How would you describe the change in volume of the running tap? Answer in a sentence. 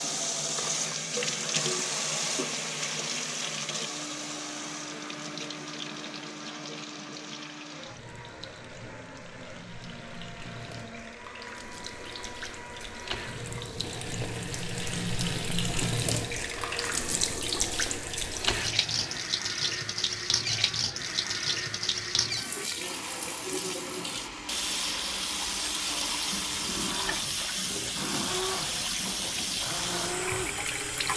The volume of the running tap goes down, then up.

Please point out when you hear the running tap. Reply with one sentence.
The running tap can be heard from 0.0 to 31.1 s.